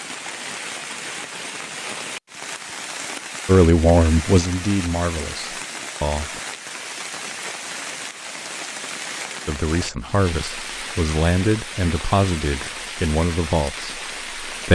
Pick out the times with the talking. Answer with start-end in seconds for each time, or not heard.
3.5-6.4, 9.4-14.7.